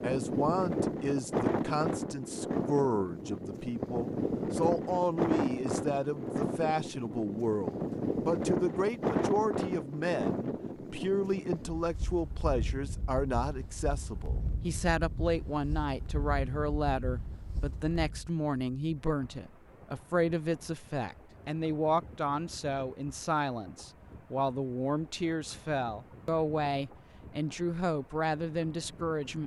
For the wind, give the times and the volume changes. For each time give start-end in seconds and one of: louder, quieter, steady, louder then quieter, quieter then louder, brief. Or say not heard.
0.0-29.4 quieter.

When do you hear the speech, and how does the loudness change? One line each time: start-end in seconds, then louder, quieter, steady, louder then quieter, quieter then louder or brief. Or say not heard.
0.0-29.4 steady.